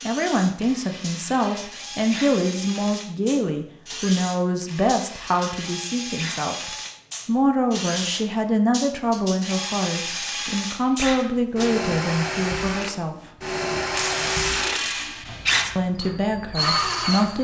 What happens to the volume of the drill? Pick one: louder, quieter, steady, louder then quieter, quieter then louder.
louder.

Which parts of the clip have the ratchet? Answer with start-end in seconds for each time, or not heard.
0.6-2.4, 4.7-6.5, 9.4-11.3, 13.9-15.8.